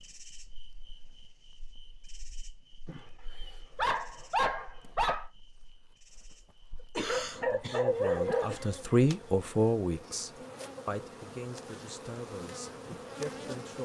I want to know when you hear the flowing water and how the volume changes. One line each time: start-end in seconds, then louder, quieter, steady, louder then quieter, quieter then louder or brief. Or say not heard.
not heard.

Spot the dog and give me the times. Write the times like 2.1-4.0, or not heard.
2.9-5.2, 7.0-8.6.